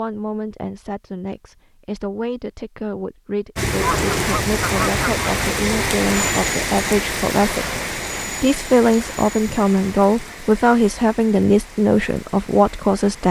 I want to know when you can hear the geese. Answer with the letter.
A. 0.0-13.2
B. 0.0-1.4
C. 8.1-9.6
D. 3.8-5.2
D.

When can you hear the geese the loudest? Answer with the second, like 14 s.
4 s.